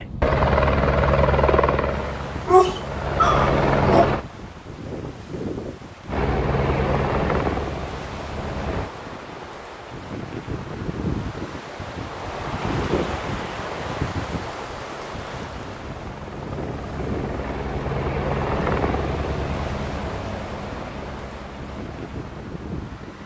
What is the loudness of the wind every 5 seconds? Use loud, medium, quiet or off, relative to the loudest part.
medium, medium, loud, medium, medium.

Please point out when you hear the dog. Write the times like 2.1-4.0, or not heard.
2.5-4.0.